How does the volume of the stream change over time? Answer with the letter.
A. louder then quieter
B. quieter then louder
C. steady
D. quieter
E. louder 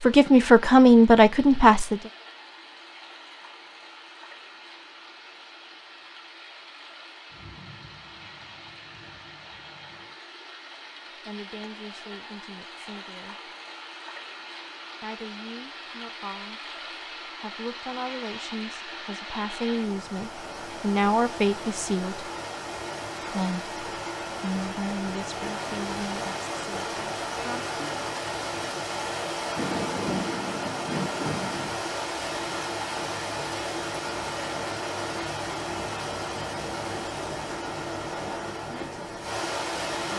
E.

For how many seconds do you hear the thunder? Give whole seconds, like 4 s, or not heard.
5 s.